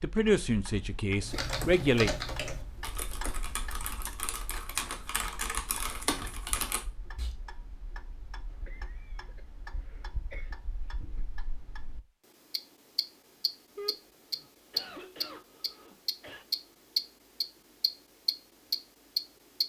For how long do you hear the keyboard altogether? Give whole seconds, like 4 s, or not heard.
6 s.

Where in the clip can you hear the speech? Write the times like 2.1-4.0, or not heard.
0.0-2.1.